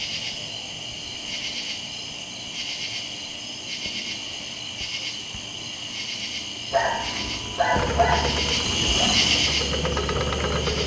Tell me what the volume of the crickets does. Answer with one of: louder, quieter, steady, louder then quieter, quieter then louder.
louder.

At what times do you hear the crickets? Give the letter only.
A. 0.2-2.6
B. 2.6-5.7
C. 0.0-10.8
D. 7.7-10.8
C.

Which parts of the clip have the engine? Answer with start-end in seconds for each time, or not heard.
7.7-10.8.